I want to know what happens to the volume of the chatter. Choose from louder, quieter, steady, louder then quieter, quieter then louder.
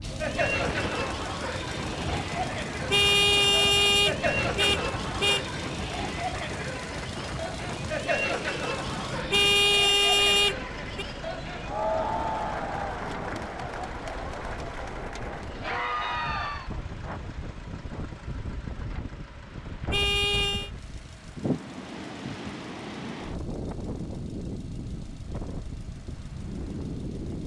steady.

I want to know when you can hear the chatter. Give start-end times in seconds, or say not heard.
0.0-16.7.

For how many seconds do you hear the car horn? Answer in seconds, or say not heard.
5 s.